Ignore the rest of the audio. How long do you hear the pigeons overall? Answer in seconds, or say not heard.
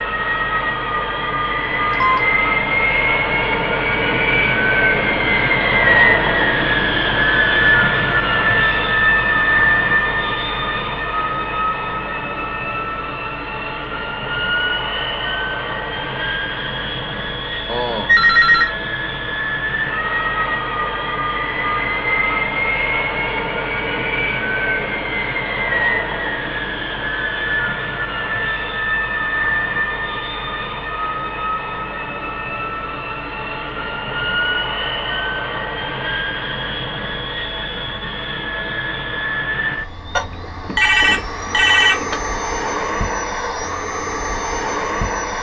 not heard.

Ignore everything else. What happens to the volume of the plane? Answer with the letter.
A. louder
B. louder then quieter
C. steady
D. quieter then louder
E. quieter
E.